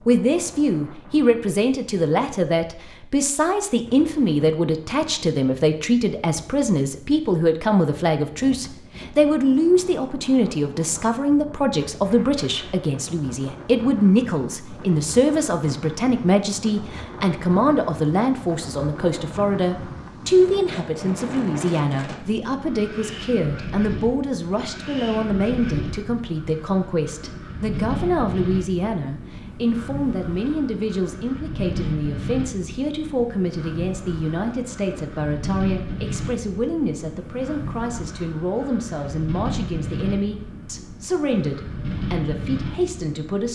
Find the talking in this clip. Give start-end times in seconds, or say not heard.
0.1-43.5.